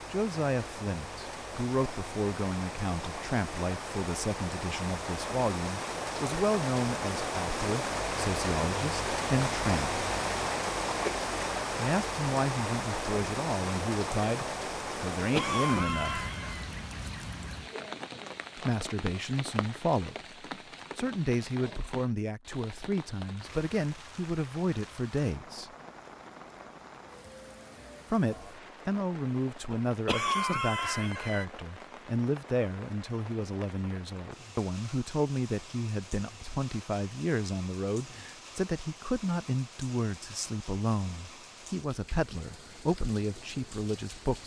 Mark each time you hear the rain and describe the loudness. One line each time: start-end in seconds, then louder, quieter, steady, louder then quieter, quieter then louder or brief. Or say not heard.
0.0-44.4 quieter.